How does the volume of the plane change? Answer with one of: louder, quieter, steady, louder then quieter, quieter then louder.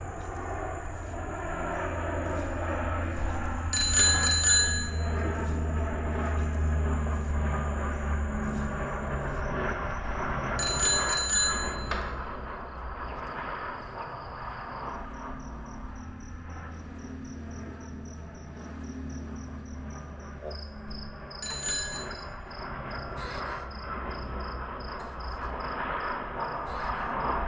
quieter then louder.